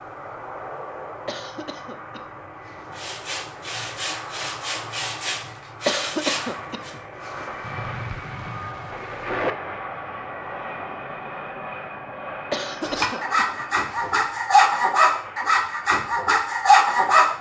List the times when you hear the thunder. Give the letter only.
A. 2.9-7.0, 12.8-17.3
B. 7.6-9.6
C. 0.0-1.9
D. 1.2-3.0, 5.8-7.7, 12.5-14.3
B.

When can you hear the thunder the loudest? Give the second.
9 s.